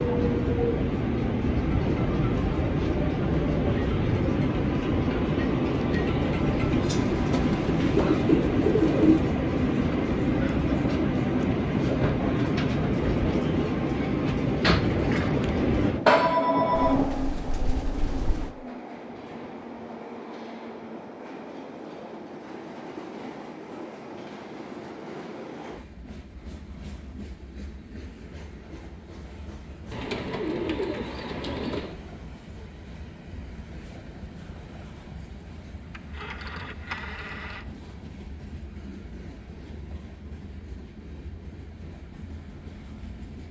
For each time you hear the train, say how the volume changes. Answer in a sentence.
The train can be heard from 0.0 to 43.4 s, getting quieter.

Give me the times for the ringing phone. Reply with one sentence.
You can hear the ringing phone from 16.1 to 16.9 s and from 35.9 to 37.6 s.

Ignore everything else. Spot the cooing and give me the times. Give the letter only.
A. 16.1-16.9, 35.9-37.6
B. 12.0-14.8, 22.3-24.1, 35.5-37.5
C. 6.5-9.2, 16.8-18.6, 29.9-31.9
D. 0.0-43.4
C.